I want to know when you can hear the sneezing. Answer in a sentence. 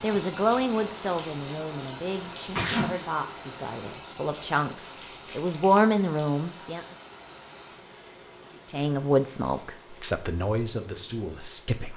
The sneezing can be heard from 2.5 to 2.9 s.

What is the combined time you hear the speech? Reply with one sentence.
You can hear the speech for 10 seconds altogether.